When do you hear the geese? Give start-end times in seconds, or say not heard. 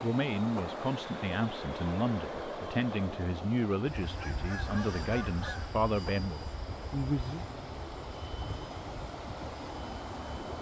4.0-5.7.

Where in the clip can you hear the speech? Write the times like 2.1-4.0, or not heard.
0.0-7.5.